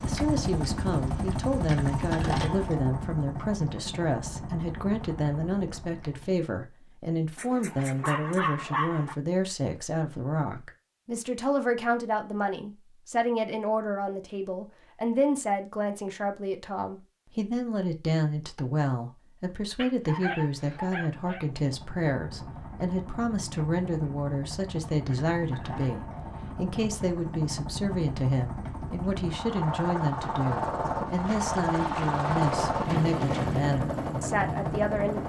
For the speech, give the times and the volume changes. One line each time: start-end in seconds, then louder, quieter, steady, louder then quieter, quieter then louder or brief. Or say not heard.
0.0-35.2 steady.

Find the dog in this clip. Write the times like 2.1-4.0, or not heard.
7.3-9.2, 19.8-21.4.